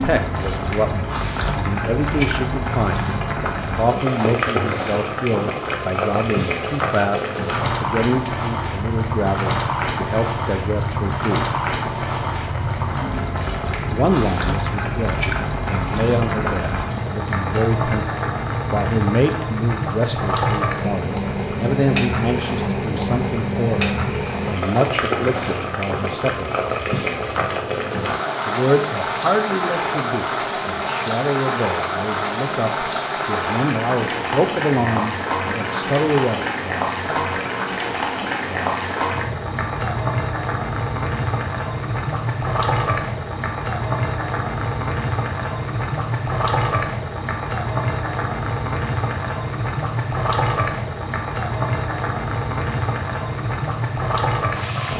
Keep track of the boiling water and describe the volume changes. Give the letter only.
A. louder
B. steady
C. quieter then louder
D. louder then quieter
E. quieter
B.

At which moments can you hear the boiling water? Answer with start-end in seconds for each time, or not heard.
0.0-54.9.